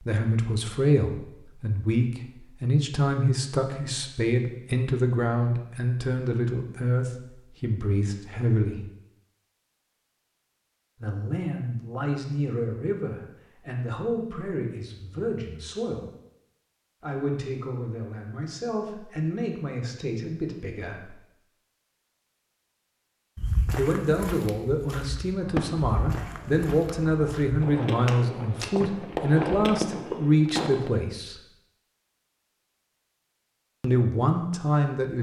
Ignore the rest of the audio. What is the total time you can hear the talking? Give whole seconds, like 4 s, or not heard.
27 s.